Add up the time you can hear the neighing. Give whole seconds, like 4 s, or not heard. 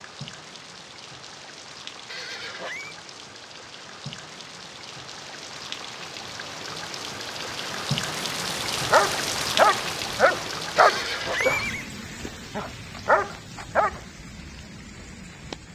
2 s.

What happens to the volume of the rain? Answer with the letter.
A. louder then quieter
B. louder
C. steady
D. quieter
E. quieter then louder
A.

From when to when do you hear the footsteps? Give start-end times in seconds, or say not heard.
not heard.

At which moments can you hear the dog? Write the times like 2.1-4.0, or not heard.
8.9-11.8, 12.5-13.9.